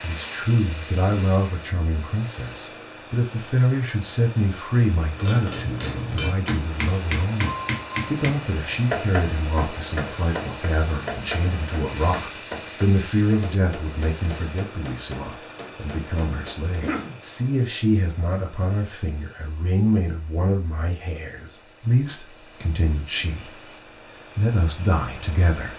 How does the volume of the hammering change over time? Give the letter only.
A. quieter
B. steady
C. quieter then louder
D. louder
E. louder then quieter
A.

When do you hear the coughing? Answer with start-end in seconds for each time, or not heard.
16.6-17.2.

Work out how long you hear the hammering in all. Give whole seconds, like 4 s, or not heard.
12 s.